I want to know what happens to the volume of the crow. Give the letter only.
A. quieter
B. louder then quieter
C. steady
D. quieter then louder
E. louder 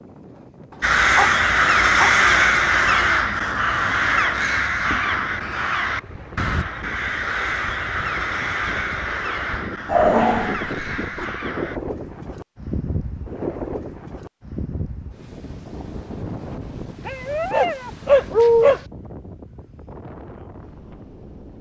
A.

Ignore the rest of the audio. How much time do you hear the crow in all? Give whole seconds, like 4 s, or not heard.
11 s.